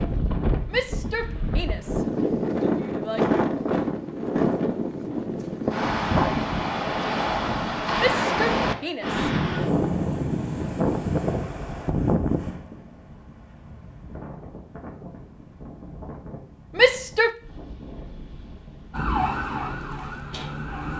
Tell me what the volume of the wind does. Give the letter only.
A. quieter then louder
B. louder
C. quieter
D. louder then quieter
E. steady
C.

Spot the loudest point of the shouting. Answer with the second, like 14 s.
17 s.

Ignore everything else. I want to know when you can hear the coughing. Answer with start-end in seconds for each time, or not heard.
not heard.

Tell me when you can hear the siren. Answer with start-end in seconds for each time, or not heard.
18.9-20.9.